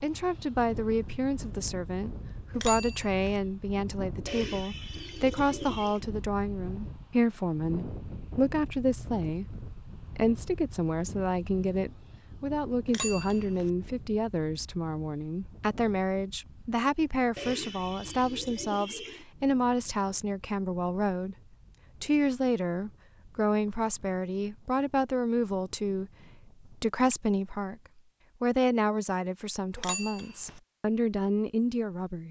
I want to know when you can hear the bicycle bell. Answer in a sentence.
You can hear the bicycle bell from 2.5 to 3.4 s, from 12.8 to 13.7 s and from 29.8 to 30.6 s.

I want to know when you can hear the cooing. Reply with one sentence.
The cooing can be heard from 4.2 to 6.0 s and from 17.4 to 19.2 s.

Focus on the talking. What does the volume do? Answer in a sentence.
The loudness of the talking stays about the same.